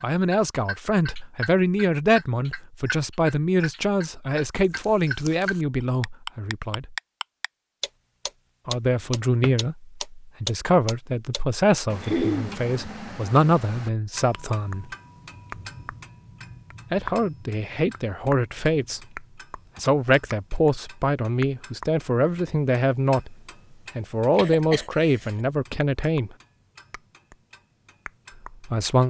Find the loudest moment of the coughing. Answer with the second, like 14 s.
12 s.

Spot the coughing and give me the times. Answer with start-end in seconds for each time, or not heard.
12.0-12.6, 24.4-25.3.